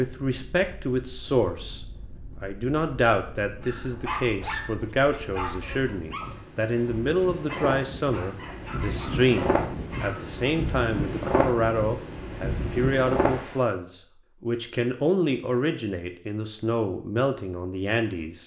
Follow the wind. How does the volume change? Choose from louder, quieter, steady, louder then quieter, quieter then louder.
louder.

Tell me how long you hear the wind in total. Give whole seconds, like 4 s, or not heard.
13 s.